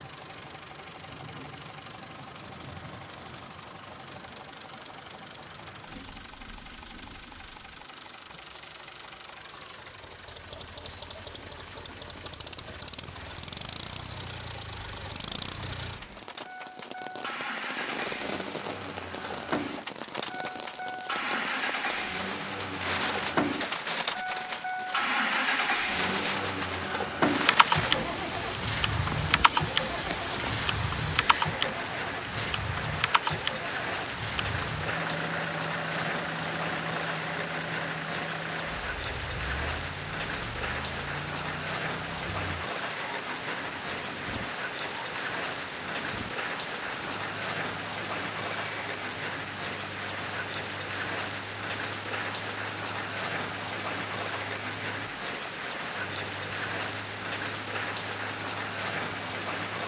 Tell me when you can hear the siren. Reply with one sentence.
You can't hear the siren here.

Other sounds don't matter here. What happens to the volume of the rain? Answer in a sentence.
The loudness of the rain goes up.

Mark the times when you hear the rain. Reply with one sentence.
The rain can be heard from 0.0 to 59.8 s.